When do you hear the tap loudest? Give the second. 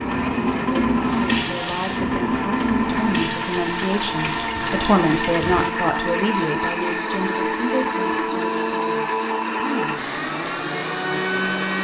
1 s.